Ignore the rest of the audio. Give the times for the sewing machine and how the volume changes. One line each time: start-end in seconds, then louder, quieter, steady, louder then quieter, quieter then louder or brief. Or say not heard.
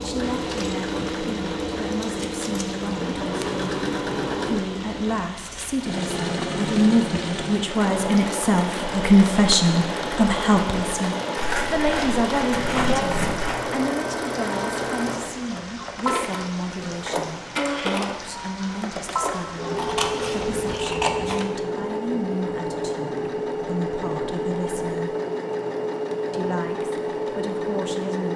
0.0-28.3 steady.